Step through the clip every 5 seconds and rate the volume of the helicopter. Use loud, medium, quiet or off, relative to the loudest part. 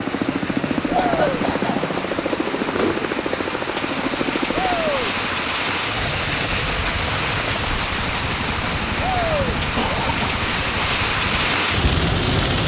loud, medium, medium.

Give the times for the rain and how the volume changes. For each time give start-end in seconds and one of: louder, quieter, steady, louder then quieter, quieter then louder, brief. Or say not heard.
0.0-12.6 louder.